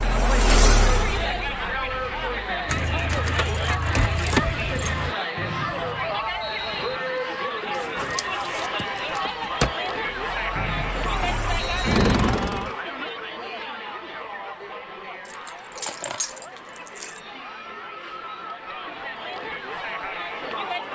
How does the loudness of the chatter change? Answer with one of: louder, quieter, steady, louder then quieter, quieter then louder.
quieter.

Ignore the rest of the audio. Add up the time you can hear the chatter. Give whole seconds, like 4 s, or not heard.
21 s.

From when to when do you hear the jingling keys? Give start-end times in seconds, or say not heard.
2.6-5.2, 7.7-9.8, 15.2-17.2.